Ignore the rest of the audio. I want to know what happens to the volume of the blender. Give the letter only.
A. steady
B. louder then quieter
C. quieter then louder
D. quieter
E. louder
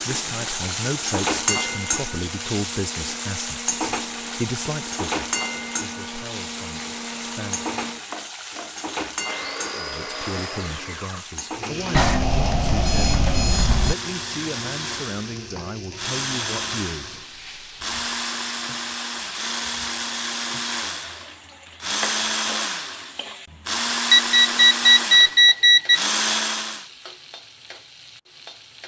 E.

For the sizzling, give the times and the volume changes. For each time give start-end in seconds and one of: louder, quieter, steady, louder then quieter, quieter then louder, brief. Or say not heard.
0.0-28.8 quieter.